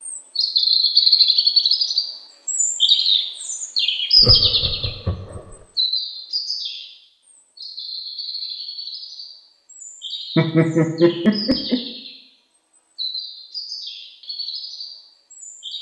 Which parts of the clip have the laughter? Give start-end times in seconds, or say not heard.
4.2-5.5, 10.3-11.8.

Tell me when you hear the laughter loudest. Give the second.
11 s.